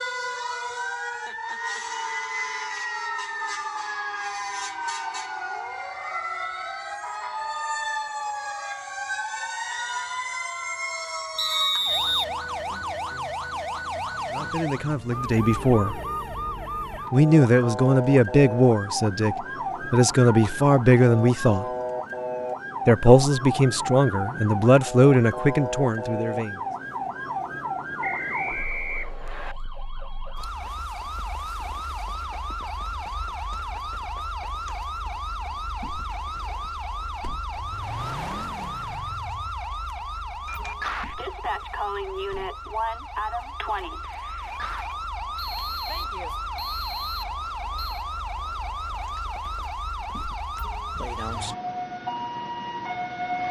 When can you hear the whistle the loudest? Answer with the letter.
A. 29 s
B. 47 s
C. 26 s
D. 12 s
D.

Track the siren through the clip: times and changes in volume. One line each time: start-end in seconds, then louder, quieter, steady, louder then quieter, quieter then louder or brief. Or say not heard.
0.0-53.4 steady.